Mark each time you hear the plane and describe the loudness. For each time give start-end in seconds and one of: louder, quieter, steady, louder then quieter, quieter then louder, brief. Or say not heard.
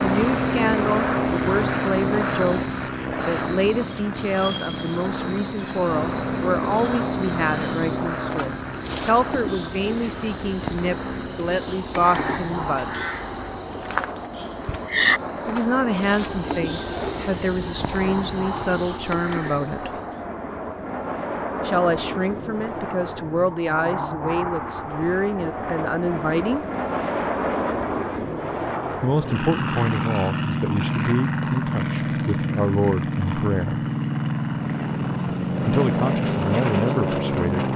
0.0-37.7 quieter then louder.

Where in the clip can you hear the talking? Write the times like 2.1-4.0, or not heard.
0.0-13.0, 15.4-19.9, 21.6-26.6, 29.0-33.9, 35.6-37.6.